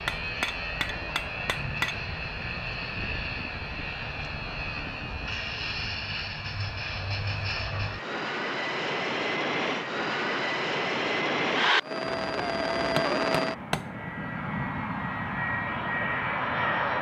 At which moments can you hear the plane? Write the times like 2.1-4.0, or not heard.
0.0-16.9.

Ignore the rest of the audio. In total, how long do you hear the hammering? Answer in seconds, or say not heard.
4 s.